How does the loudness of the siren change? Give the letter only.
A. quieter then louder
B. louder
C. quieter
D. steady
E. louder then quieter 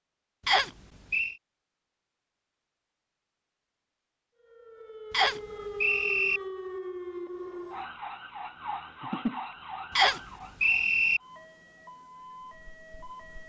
C.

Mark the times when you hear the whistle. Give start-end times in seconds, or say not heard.
0.5-1.4, 5.1-6.4, 9.9-11.2.